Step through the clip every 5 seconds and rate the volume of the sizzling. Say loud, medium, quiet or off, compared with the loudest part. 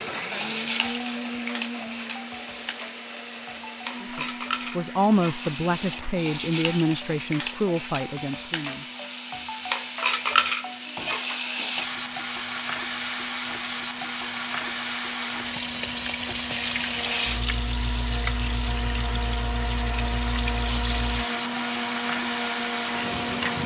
medium, medium, loud, loud, loud.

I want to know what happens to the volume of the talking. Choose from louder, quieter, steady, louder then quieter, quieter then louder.
quieter.